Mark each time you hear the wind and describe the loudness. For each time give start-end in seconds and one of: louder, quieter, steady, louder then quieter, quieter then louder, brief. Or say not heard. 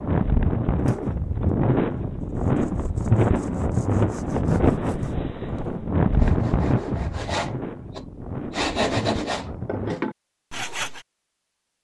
0.0-10.1 quieter.